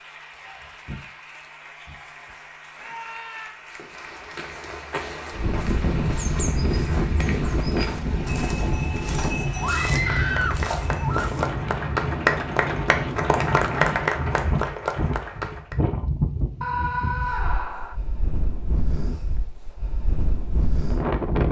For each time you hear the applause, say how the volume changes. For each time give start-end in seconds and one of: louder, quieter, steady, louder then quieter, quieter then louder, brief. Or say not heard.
0.0-15.8 louder.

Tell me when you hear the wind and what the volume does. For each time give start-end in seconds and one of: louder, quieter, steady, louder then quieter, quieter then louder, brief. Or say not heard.
5.3-21.4 quieter.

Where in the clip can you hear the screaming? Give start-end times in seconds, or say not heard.
2.8-3.6, 9.6-11.3, 16.6-17.9.